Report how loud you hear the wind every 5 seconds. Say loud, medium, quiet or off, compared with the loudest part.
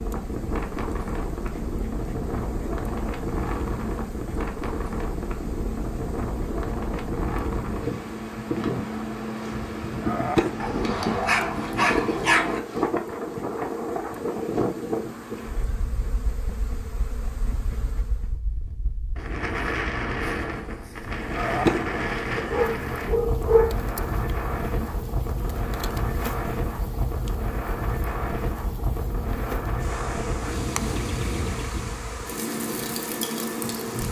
loud, loud, loud, medium, loud, loud, loud.